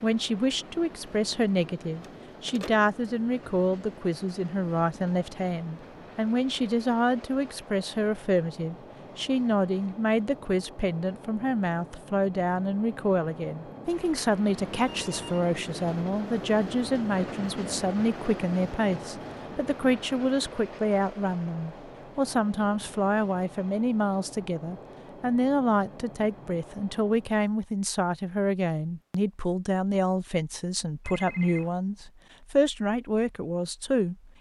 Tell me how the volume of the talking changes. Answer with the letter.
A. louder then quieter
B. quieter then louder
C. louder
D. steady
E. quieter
D.